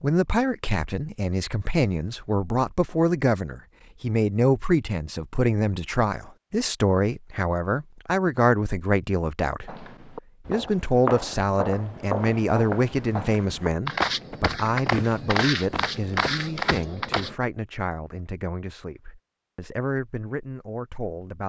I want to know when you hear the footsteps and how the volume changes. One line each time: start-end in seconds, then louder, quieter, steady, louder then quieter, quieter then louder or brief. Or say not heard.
9.7-17.4 steady.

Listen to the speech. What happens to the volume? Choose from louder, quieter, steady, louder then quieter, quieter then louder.
quieter.